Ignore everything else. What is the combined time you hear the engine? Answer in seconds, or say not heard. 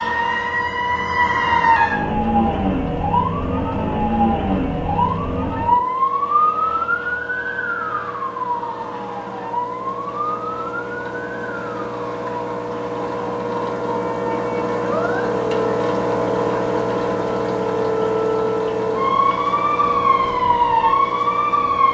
22 s.